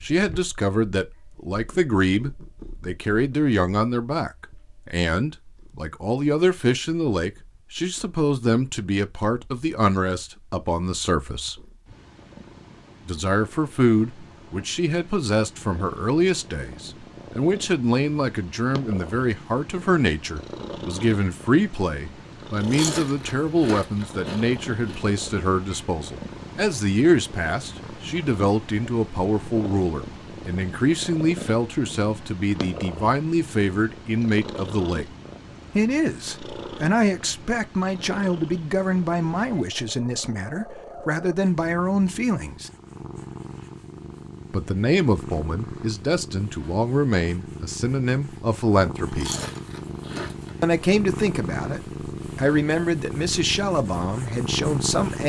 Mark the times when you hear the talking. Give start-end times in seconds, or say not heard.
0.0-11.6, 13.1-35.0, 35.8-42.7, 44.5-49.3, 50.6-55.2.